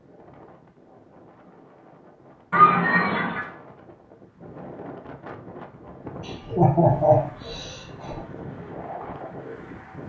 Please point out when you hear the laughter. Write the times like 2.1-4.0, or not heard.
2.5-3.5, 6.2-8.2.